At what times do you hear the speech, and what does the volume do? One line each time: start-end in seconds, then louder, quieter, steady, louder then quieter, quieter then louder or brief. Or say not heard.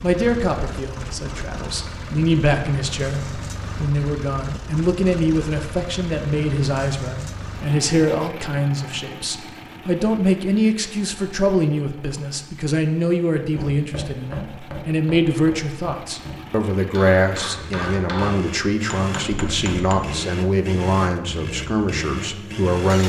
0.0-23.0 steady.